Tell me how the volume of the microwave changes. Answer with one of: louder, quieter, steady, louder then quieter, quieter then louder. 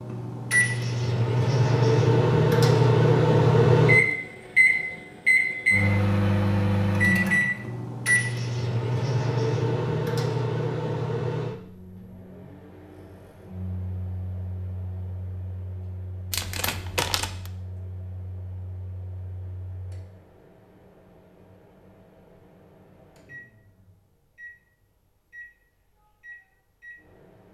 quieter.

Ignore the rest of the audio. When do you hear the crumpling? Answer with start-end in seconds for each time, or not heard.
16.3-17.5.